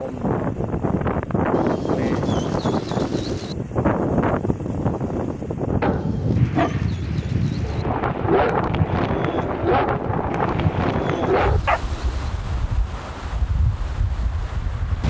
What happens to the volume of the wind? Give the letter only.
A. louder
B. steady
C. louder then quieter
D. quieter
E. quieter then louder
D.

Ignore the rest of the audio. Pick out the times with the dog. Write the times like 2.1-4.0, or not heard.
5.7-12.2.